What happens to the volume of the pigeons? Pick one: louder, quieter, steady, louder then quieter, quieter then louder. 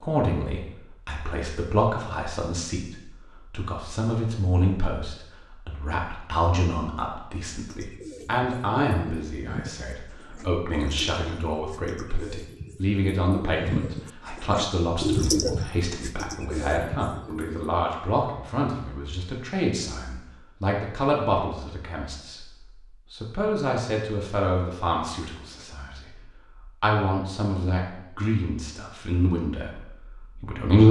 louder then quieter.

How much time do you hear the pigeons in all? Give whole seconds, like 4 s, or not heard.
10 s.